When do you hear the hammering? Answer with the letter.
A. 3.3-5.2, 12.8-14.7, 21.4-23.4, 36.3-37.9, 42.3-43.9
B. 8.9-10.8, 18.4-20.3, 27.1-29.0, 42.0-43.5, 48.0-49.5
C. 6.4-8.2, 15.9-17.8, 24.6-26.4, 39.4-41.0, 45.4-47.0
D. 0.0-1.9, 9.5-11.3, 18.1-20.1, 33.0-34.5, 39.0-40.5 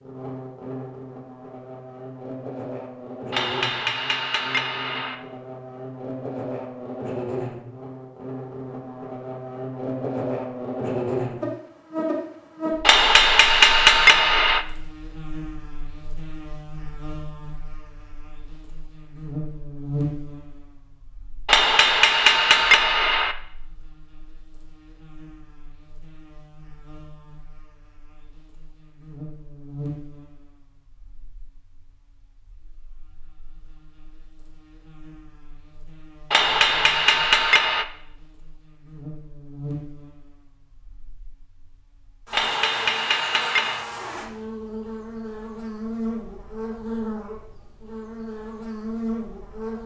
A.